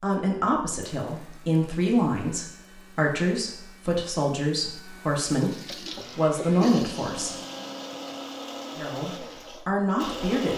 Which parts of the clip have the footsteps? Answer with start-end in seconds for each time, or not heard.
not heard.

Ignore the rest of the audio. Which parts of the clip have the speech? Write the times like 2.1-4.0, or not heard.
0.0-7.3, 8.8-10.5.